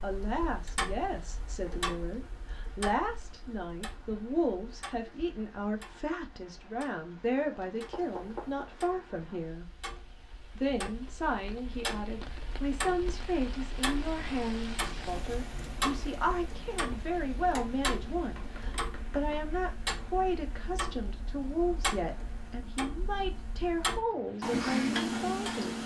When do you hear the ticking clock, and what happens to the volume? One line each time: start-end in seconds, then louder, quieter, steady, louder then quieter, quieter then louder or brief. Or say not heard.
0.0-25.8 quieter then louder.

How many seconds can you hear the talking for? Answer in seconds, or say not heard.
25 s.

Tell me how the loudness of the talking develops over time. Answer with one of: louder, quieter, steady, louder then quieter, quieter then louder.
steady.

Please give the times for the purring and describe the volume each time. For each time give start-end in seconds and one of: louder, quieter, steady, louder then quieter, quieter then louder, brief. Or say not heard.
not heard.